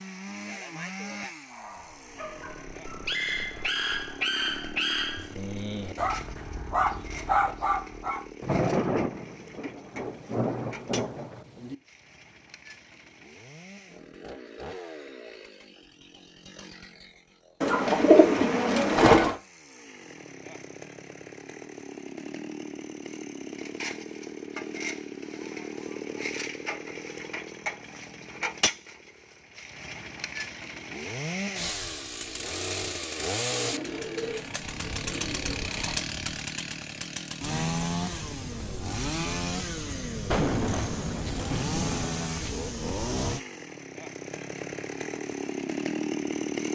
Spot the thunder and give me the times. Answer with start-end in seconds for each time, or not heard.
8.4-11.8, 40.3-42.3.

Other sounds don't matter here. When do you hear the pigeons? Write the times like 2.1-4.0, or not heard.
17.6-19.4, 33.6-36.0.